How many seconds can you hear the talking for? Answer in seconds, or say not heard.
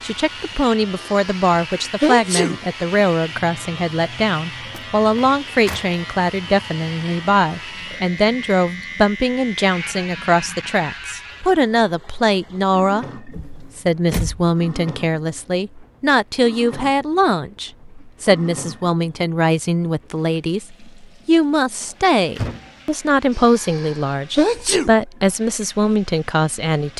27 s.